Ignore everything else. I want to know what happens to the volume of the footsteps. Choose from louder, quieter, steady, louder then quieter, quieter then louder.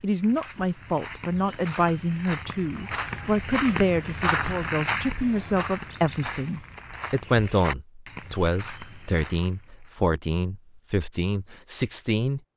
louder then quieter.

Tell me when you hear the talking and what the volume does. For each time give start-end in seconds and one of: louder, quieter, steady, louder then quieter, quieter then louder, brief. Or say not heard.
0.0-12.4 steady.